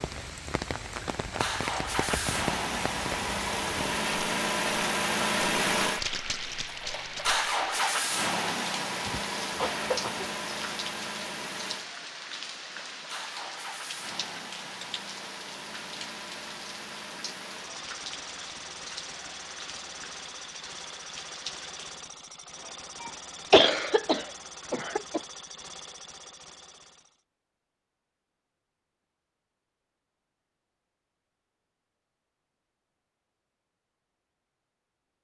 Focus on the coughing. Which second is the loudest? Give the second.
24 s.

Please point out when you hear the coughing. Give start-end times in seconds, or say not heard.
9.1-10.3, 23.0-25.2.